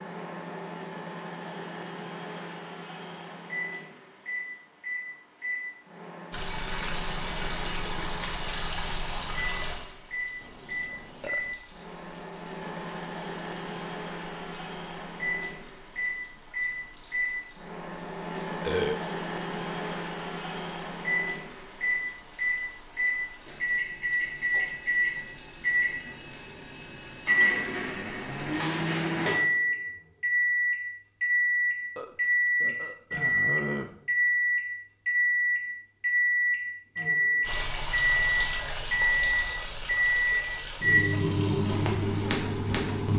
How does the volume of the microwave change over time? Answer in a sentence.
The loudness of the microwave goes up.